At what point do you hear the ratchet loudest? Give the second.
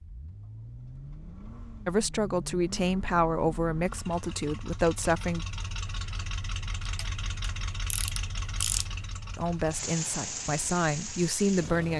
9 s.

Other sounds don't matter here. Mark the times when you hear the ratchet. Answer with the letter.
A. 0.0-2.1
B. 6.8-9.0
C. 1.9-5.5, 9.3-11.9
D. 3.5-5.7
B.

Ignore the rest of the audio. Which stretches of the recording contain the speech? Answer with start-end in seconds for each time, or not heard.
1.9-5.5, 9.3-11.9.